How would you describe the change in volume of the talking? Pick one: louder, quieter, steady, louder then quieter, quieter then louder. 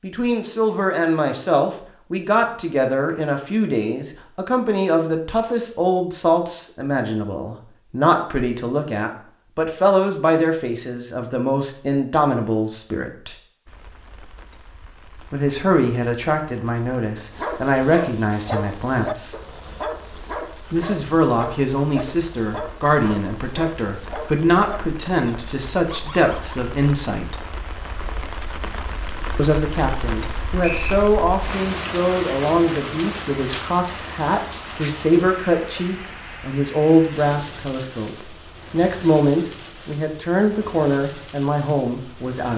steady.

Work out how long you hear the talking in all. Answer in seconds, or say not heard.
37 s.